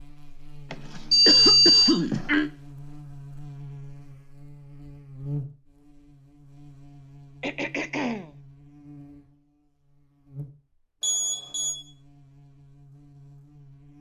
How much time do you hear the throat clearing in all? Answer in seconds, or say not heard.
3 s.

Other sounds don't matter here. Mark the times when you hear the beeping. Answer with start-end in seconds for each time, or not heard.
1.1-1.9, 11.0-11.8.